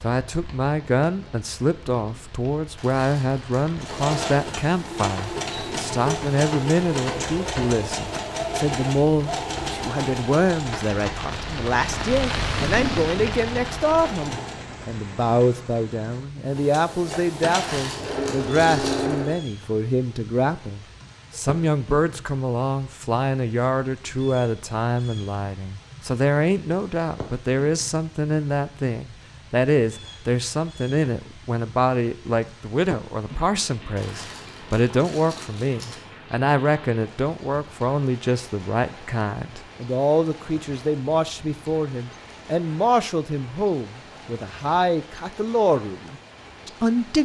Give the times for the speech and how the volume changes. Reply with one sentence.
You can hear the speech from 0.0 to 47.2 s, at a steady volume.